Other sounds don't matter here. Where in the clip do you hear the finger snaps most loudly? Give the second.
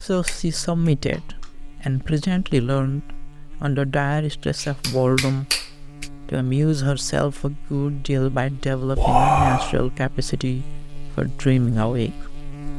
9 s.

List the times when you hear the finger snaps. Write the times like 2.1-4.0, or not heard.
0.2-1.4, 4.6-6.0, 8.9-9.8.